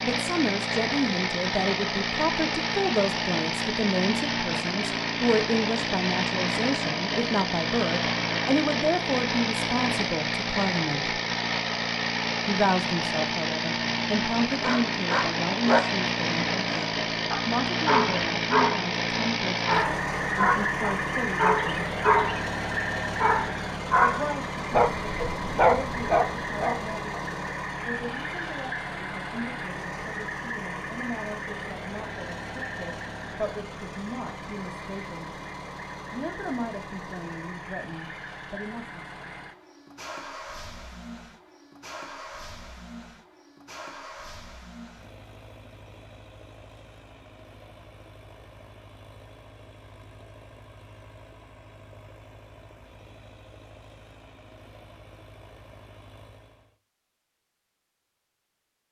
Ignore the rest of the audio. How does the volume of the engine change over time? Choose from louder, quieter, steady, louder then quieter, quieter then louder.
quieter.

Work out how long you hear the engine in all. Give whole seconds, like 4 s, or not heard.
57 s.